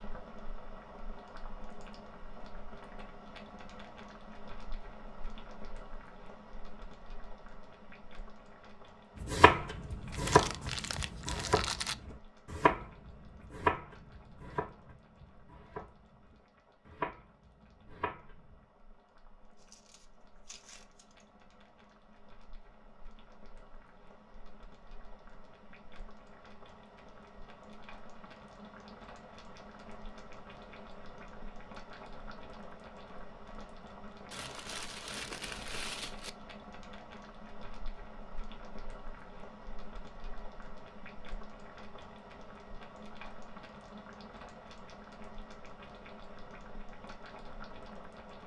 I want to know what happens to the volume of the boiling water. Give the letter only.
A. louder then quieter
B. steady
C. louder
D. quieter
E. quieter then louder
E.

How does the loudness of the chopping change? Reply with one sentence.
The loudness of the chopping goes down, then up.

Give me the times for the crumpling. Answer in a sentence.
You can hear the crumpling from 10.1 to 11.9 s, from 19.6 to 21.2 s and from 34.3 to 36.3 s.